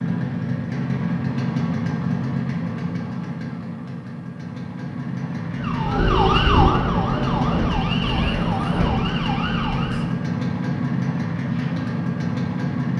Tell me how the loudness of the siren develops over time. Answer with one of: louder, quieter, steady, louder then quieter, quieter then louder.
quieter.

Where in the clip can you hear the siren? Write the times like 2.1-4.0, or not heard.
5.6-10.1.